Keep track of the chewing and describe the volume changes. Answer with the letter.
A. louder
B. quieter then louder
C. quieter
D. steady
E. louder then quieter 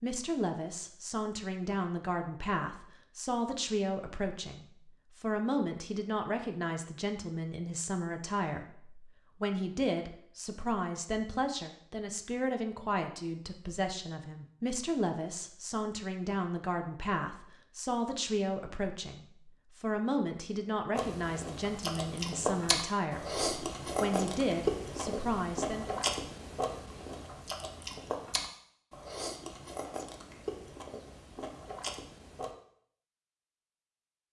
C.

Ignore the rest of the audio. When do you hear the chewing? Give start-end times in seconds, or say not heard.
20.9-32.5.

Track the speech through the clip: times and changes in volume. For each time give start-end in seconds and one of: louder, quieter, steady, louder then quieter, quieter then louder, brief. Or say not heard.
0.0-26.1 steady.